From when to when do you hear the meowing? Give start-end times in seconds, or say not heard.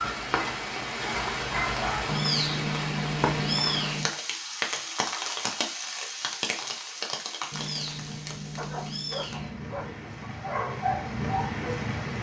2.0-4.1, 7.5-9.5.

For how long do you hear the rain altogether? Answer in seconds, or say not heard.
12 s.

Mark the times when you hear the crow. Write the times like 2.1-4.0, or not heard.
not heard.